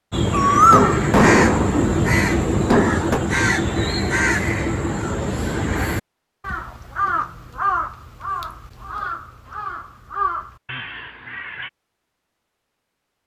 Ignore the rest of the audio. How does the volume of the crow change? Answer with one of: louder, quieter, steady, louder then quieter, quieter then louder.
quieter.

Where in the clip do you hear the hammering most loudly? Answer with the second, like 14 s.
1 s.